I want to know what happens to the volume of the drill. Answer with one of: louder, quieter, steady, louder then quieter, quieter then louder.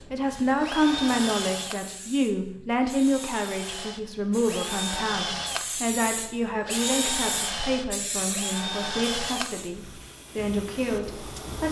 quieter then louder.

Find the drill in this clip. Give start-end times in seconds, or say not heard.
0.0-9.9.